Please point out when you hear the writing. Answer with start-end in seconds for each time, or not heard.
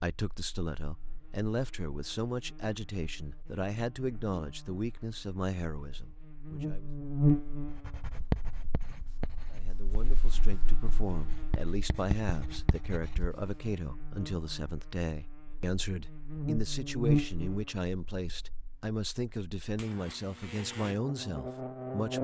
7.7-13.6.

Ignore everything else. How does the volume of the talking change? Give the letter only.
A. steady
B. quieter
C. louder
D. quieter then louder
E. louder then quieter
A.